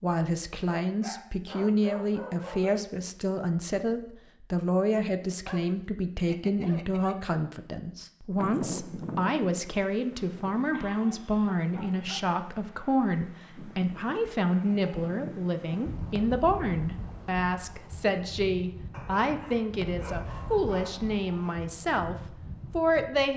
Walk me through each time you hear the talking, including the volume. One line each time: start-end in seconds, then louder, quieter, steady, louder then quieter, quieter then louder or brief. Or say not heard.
0.0-23.3 steady.